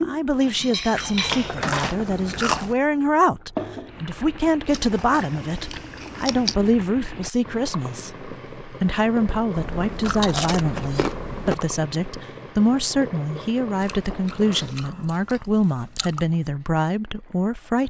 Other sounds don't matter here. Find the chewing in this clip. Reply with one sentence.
You can hear the chewing from 0.9 to 2.8 s, from 4.7 to 6.5 s, from 9.6 to 11.6 s and from 13.8 to 16.2 s.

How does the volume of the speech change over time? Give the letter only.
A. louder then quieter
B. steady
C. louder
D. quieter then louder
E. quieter
B.